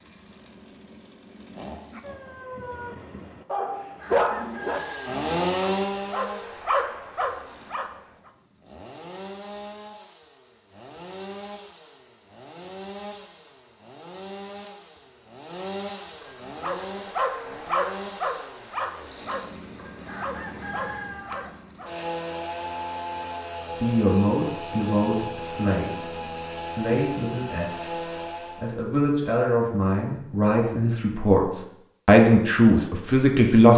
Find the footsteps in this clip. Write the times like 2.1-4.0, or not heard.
not heard.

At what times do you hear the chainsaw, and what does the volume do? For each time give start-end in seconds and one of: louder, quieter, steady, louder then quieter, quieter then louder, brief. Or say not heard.
0.0-2.4 brief
4.4-28.8 quieter then louder.